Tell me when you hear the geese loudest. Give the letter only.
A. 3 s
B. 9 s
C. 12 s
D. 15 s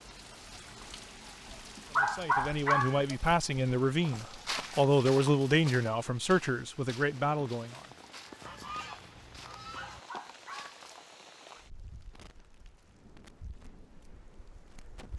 B.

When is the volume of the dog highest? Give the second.
3 s.